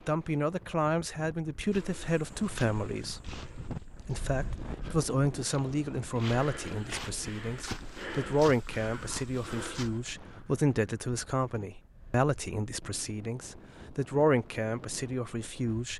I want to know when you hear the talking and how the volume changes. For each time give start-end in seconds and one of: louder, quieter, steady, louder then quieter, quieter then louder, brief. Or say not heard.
0.1-15.9 steady.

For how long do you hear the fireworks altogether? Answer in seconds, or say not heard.
not heard.